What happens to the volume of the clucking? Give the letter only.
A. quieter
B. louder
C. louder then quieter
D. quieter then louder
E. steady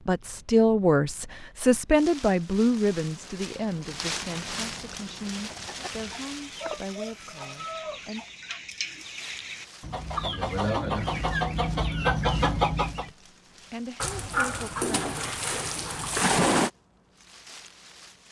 B.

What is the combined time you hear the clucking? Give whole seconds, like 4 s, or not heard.
8 s.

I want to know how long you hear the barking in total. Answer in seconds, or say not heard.
3 s.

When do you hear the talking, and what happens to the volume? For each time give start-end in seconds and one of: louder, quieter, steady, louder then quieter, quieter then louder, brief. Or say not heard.
0.0-8.2 quieter
13.0-15.2 brief.